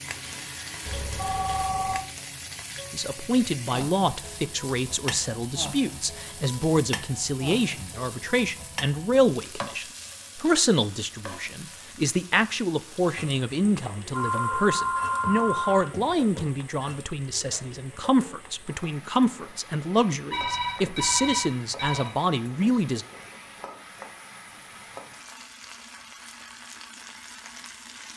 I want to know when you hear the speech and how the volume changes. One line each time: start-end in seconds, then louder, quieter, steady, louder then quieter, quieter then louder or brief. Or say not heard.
2.9-23.1 steady.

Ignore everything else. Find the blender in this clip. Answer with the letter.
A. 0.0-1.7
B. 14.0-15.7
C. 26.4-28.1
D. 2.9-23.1
A.